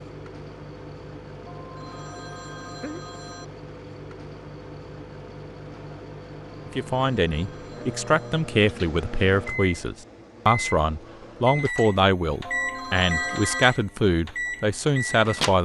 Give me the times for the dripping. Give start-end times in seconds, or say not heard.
not heard.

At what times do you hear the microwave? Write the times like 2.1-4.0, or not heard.
0.0-15.6.